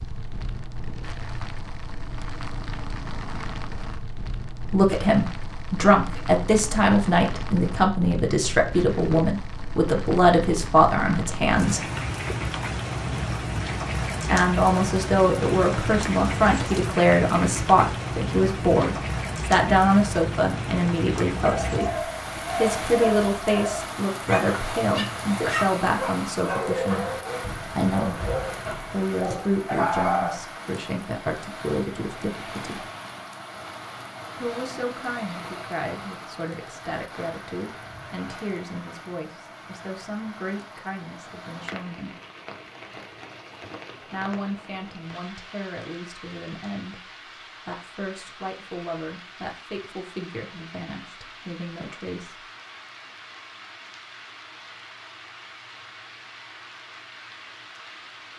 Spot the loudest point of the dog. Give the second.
30 s.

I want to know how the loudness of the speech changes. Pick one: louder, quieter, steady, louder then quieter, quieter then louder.
quieter.